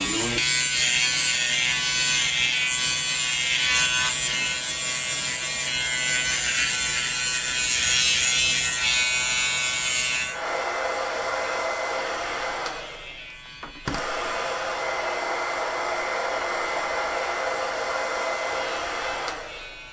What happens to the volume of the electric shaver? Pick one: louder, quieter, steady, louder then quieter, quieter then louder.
quieter.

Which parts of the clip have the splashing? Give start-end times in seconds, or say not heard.
not heard.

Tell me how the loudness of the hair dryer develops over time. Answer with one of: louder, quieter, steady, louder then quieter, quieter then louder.
louder.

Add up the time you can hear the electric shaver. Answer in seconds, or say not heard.
20 s.